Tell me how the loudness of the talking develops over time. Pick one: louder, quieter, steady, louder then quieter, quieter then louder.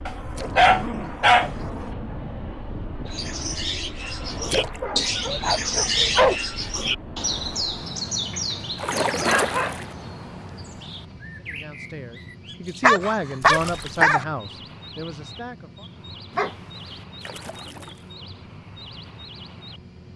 louder then quieter.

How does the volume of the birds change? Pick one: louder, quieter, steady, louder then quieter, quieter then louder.
quieter.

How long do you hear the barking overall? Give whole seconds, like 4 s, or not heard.
7 s.